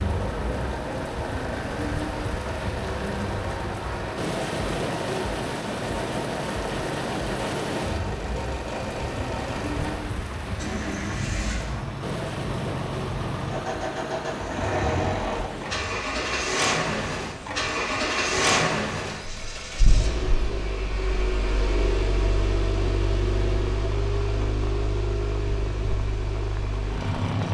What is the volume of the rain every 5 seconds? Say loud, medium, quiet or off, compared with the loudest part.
loud, loud, loud, medium, medium, medium.